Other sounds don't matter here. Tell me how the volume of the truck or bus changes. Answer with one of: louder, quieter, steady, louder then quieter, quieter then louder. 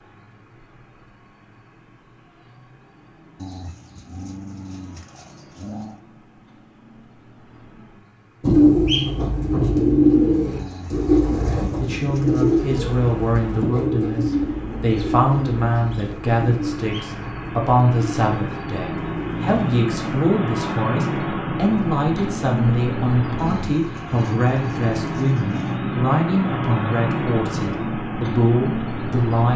louder.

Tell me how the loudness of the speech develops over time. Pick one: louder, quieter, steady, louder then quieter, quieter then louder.
steady.